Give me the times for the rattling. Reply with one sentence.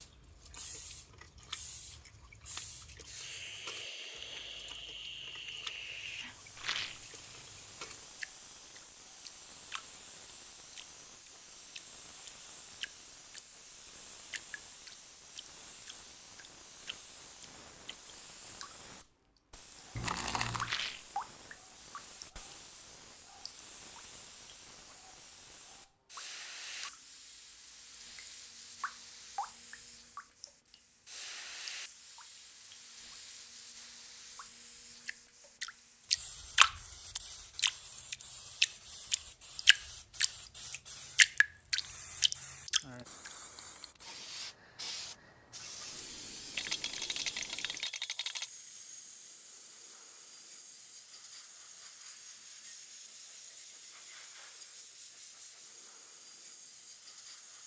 You can hear the rattling from 6.5 to 7.0 s, from 20.6 to 21.1 s and from 46.5 to 48.5 s.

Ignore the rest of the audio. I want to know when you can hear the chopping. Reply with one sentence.
The chopping can't be heard in this clip.